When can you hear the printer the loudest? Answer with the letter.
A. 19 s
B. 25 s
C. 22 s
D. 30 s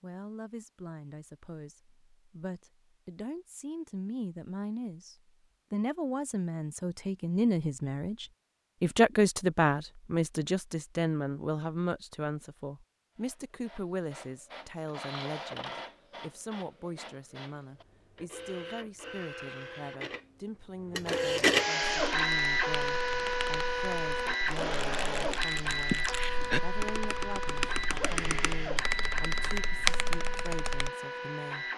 C.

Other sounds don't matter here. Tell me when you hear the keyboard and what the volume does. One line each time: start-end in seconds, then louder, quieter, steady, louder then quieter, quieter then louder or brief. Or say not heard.
21.8-30.9 louder.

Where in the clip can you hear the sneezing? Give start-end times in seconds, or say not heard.
25.9-26.6.